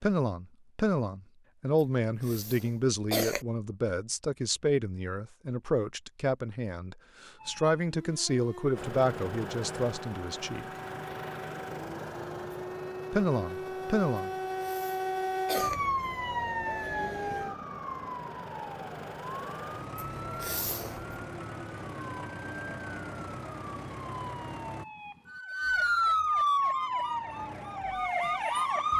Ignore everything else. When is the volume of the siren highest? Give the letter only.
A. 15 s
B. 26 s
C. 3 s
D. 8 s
B.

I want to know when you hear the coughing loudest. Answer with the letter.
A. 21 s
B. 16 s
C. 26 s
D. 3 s
D.